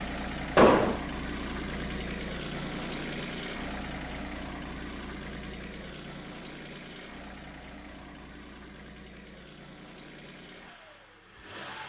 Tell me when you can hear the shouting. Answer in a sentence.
You can't hear the shouting here.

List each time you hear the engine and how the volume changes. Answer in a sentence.
The engine can be heard from 0.0 to 11.8 s, getting quieter.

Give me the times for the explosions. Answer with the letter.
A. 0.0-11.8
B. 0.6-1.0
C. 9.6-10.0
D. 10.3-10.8
B.